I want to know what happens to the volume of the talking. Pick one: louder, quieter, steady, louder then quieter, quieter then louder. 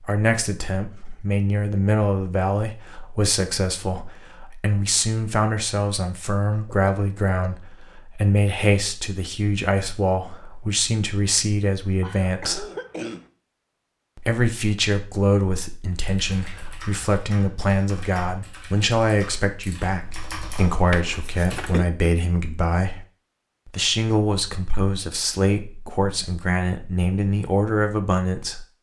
steady.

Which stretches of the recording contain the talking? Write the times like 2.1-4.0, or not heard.
0.0-12.7, 14.2-23.1, 23.6-28.6.